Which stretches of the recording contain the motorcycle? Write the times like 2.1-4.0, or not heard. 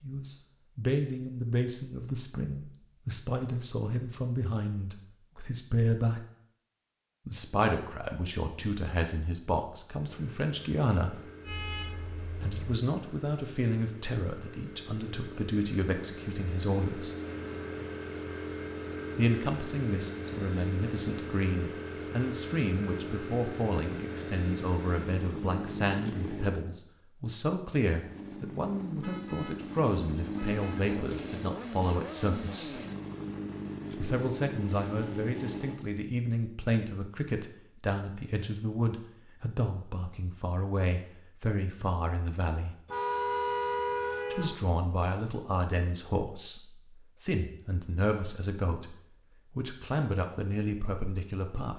9.9-26.6, 27.9-35.9.